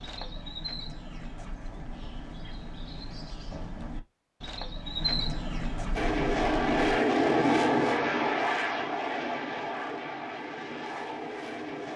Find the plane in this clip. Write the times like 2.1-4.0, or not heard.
6.0-11.9.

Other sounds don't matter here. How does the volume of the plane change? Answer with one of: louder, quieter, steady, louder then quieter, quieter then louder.
quieter.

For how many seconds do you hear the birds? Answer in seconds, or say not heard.
7 s.